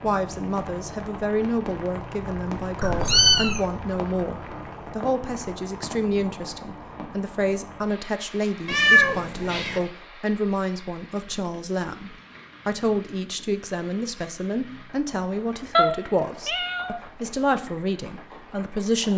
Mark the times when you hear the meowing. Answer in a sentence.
The meowing can be heard from 2.8 to 3.6 s, from 8.7 to 9.8 s and from 15.8 to 17.0 s.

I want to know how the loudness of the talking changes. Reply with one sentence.
The loudness of the talking stays about the same.